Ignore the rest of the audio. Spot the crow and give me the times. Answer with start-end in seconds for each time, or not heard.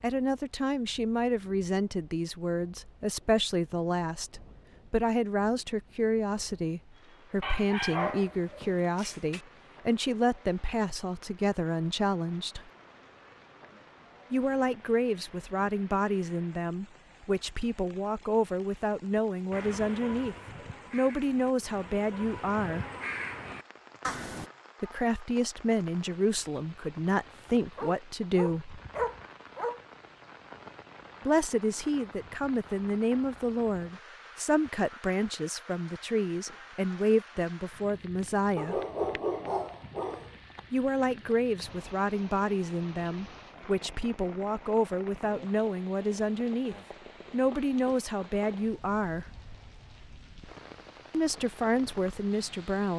19.1-24.5.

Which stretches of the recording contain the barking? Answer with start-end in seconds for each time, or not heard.
7.4-9.4, 27.8-29.8, 38.5-40.3.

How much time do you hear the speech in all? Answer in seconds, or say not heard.
43 s.